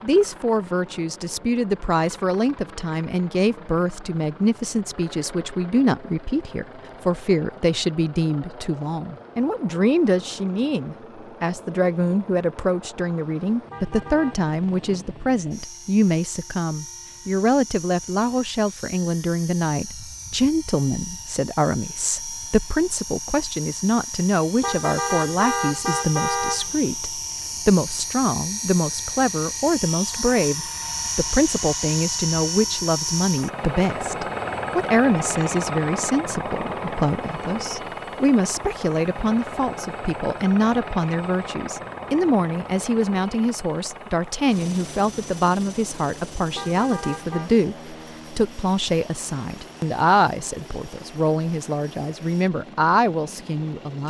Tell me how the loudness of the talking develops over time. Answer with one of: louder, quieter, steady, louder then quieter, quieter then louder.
steady.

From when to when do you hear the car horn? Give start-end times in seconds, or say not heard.
13.7-14.5, 24.6-26.9, 46.5-47.5.